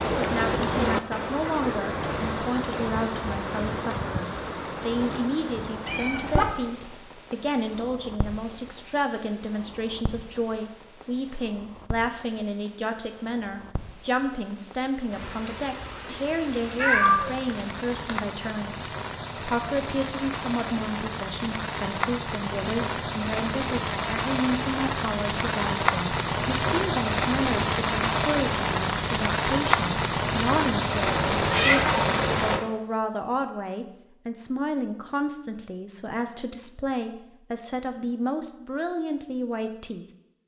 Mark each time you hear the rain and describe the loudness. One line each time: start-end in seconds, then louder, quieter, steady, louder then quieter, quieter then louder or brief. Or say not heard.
0.0-32.6 quieter then louder.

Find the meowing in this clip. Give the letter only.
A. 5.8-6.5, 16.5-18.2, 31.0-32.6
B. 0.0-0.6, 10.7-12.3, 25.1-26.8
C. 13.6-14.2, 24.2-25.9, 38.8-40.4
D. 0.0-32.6
A.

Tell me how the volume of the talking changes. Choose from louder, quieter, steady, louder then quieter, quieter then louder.
steady.